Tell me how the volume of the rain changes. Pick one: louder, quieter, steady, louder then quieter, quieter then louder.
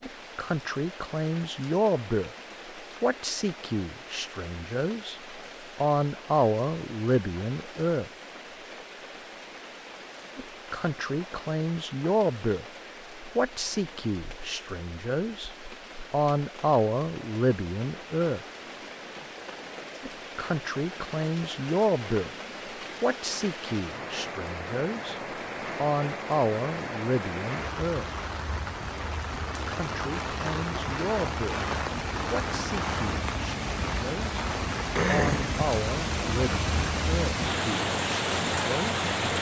louder.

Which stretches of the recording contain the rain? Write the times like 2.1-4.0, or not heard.
0.0-39.3.